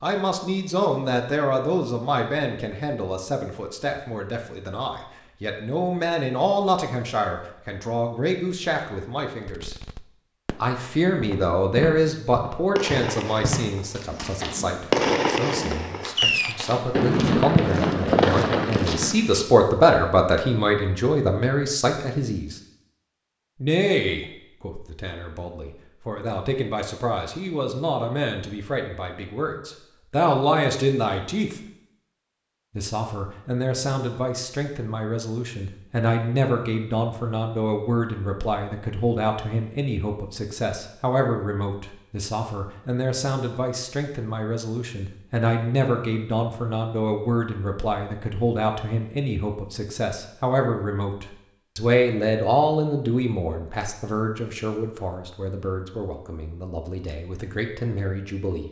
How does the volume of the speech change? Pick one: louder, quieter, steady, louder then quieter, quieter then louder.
steady.